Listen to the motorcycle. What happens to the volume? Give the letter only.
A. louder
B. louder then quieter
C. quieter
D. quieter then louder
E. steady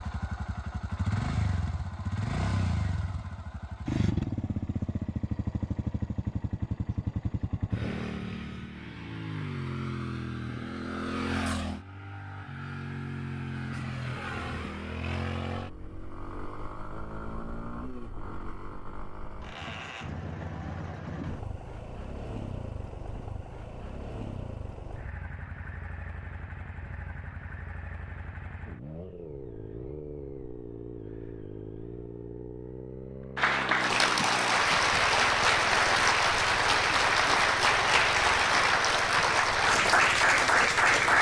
C.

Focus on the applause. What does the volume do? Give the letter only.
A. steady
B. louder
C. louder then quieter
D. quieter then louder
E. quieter
A.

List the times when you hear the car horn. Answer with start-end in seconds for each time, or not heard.
not heard.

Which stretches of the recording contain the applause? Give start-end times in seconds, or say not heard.
33.4-41.1.